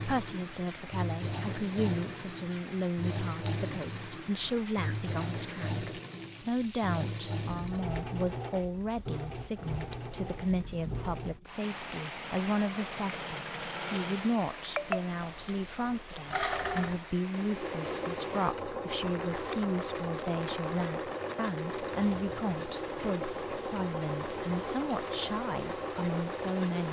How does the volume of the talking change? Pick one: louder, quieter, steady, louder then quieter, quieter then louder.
steady.